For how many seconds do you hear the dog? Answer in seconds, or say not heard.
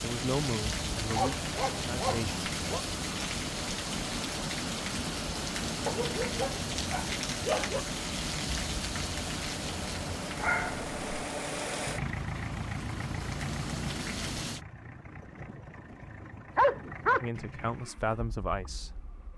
5 s.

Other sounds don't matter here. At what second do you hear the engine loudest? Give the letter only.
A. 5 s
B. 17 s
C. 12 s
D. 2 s
C.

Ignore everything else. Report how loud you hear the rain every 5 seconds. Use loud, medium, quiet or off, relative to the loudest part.
loud, loud, medium, off.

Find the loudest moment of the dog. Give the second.
17 s.